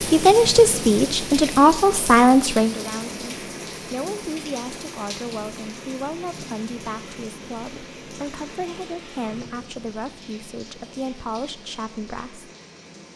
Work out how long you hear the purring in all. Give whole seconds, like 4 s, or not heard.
not heard.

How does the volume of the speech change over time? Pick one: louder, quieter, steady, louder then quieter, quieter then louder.
quieter.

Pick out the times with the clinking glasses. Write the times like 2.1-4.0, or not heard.
not heard.